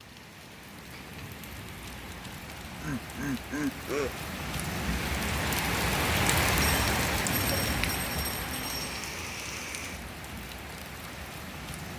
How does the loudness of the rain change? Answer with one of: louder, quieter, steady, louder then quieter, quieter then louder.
louder then quieter.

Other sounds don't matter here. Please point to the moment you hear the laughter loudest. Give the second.
4 s.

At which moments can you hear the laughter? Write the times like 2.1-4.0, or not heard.
2.2-4.2.